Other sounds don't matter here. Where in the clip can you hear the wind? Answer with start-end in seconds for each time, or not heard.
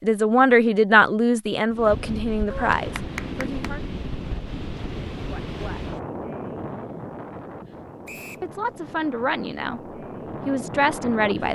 1.7-11.5.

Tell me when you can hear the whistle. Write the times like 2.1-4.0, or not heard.
8.1-8.5.